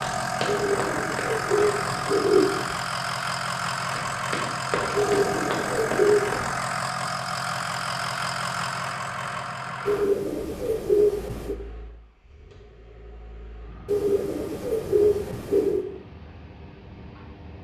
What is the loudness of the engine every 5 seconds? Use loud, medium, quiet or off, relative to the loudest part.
loud, loud, quiet, quiet.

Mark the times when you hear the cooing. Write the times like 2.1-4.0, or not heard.
0.5-2.8, 5.0-6.5, 9.8-11.6, 13.8-15.8.